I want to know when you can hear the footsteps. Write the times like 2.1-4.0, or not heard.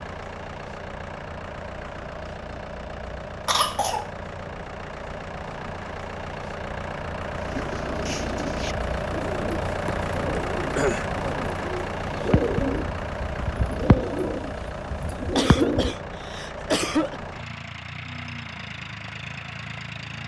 not heard.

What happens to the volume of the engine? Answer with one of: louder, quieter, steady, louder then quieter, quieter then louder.
louder then quieter.